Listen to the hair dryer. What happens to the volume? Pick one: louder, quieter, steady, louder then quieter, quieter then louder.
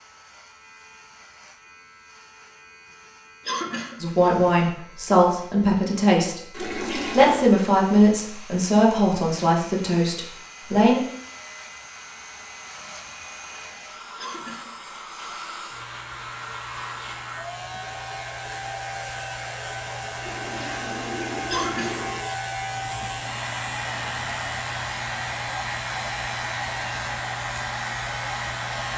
louder.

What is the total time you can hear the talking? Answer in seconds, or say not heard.
7 s.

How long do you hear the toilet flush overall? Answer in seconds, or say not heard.
3 s.